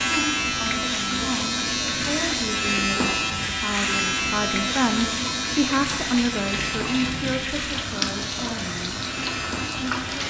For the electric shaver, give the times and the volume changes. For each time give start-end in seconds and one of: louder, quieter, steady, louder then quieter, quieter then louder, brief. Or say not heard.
0.0-10.2 quieter.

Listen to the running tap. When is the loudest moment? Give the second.
8 s.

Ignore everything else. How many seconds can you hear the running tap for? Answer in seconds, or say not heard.
10 s.